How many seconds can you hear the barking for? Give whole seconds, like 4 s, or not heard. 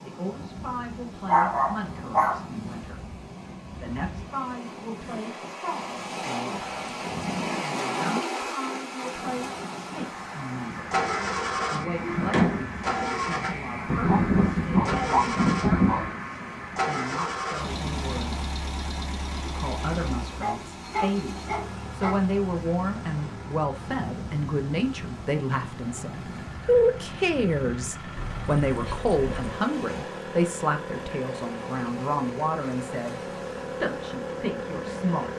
7 s.